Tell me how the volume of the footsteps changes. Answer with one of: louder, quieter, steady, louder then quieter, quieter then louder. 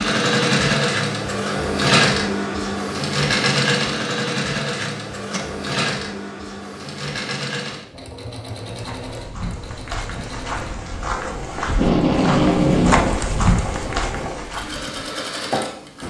louder.